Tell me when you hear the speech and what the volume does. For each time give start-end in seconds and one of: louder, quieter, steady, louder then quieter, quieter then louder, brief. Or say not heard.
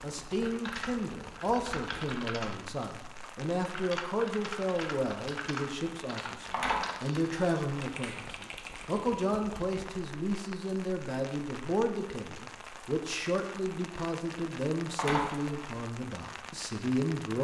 0.0-17.3 steady.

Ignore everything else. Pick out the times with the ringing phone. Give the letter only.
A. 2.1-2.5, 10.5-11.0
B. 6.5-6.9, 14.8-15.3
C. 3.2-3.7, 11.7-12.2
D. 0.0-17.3
B.